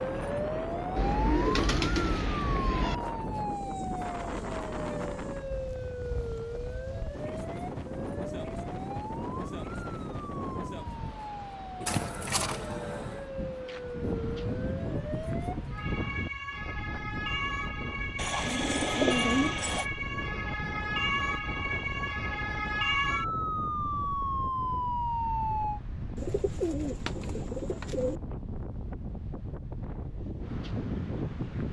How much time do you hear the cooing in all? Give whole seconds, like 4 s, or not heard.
7 s.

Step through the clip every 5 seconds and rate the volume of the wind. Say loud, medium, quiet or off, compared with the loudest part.
loud, loud, loud, loud, medium, medium, loud.